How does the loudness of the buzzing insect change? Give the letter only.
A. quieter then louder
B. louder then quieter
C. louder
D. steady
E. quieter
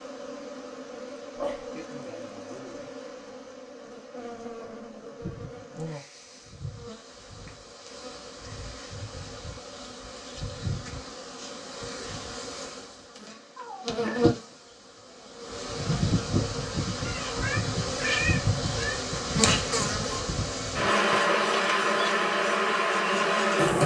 C.